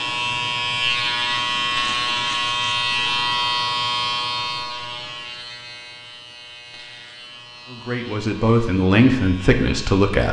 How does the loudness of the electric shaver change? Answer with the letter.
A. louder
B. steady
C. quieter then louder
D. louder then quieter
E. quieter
E.